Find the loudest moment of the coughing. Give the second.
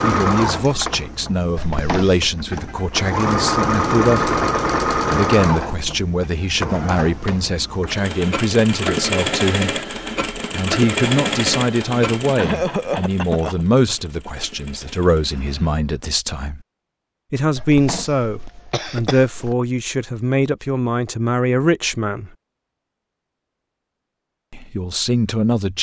13 s.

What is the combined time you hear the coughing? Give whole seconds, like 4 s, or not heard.
4 s.